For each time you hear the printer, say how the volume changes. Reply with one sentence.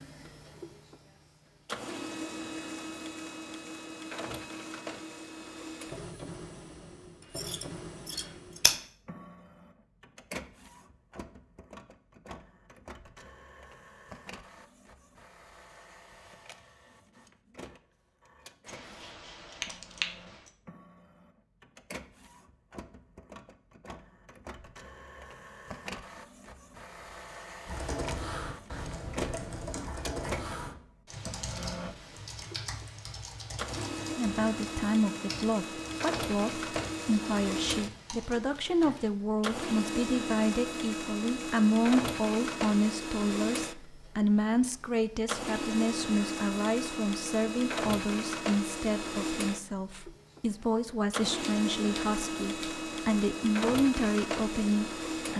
The printer can be heard from 0.0 to 55.3 s, getting quieter then louder.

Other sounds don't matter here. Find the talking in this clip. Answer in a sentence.
You can hear the talking from 34.1 to 55.3 s.